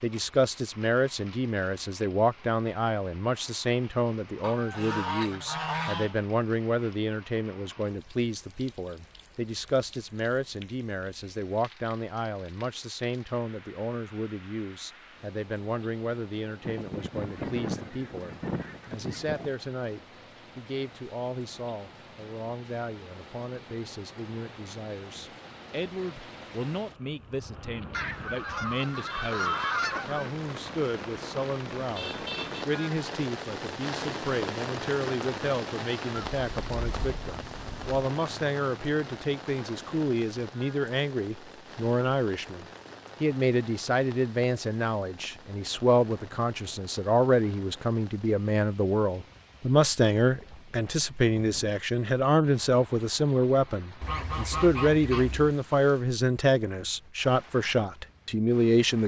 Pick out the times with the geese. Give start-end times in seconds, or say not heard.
4.4-6.2, 16.6-19.5, 27.9-30.3, 36.1-38.0, 54.0-55.5.